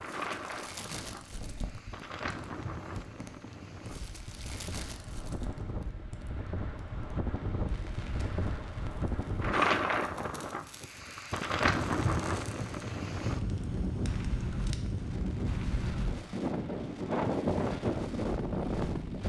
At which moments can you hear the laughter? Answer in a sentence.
You can't hear the laughter here.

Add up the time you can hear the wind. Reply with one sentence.
The wind can be heard for 19 seconds in total.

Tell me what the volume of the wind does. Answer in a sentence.
The loudness of the wind goes up.